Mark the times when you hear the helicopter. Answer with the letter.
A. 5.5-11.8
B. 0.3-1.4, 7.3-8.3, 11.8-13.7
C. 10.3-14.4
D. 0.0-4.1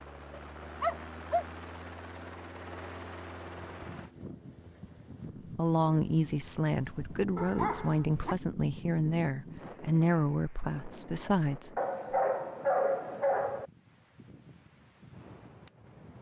D.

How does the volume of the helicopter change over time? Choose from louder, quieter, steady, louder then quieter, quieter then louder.
steady.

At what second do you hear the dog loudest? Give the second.
13 s.